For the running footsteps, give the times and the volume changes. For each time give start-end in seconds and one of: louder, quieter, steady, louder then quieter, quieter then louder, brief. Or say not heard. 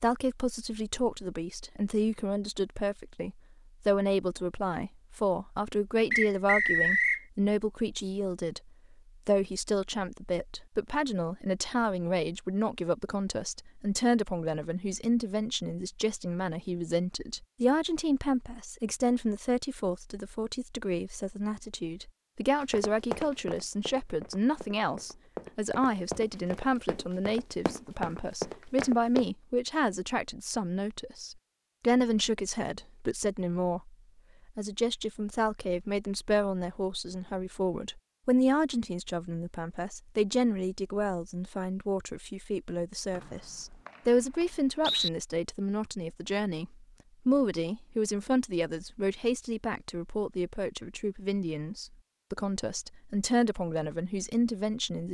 22.6-29.3 quieter then louder.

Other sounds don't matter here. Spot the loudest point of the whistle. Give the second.
7 s.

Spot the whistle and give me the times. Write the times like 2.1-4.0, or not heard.
6.1-7.2, 43.1-45.1.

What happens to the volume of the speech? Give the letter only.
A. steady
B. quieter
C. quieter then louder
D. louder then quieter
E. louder
A.